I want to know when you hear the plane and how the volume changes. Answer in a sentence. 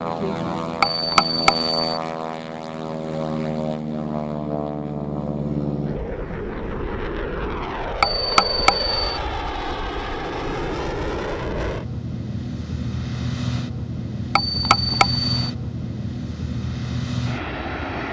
The plane can be heard from 0.0 to 18.0 s, at a steady volume.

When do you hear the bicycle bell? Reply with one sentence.
The bicycle bell can be heard from 0.8 to 2.0 s, from 8.0 to 9.2 s and from 14.3 to 15.5 s.